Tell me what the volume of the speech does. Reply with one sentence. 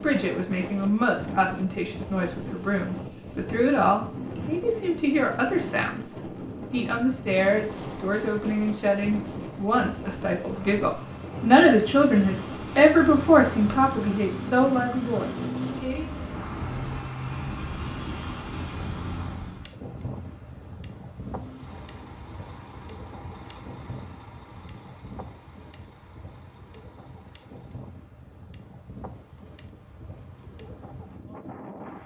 The loudness of the speech goes up.